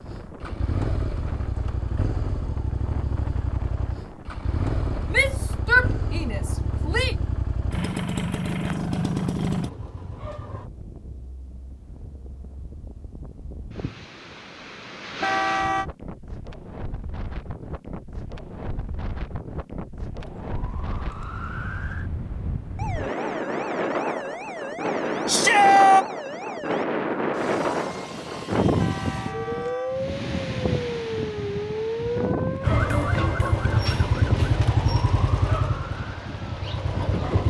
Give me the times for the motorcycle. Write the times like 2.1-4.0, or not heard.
0.0-10.7, 32.5-37.4.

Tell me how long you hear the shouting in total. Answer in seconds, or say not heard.
3 s.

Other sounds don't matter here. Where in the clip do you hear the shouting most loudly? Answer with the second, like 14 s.
26 s.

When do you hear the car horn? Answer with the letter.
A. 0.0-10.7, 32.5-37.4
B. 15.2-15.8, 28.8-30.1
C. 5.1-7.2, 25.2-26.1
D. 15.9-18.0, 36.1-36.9
B.